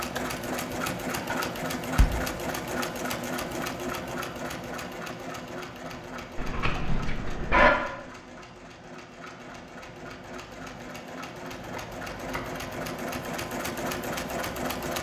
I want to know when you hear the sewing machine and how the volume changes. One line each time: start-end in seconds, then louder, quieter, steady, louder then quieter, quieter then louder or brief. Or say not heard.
0.0-14.9 quieter then louder.